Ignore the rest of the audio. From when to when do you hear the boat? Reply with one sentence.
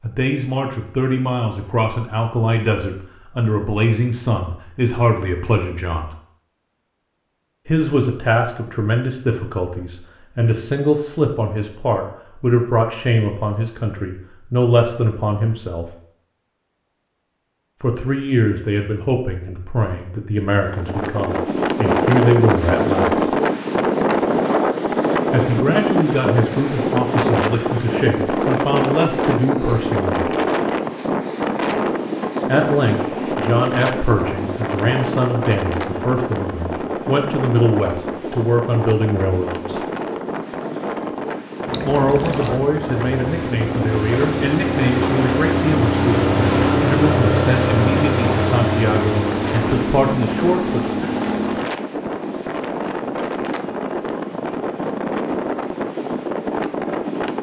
You can hear the boat from 41.6 to 51.7 s.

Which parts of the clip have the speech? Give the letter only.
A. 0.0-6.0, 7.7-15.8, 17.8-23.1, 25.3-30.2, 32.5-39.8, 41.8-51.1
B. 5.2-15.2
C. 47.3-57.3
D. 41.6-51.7
A.